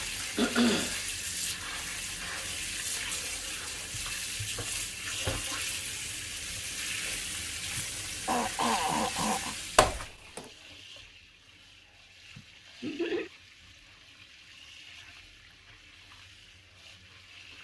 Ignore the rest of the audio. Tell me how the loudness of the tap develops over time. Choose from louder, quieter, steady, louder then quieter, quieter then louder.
quieter.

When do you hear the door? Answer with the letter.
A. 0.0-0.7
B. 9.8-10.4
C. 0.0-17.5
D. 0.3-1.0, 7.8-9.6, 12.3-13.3
B.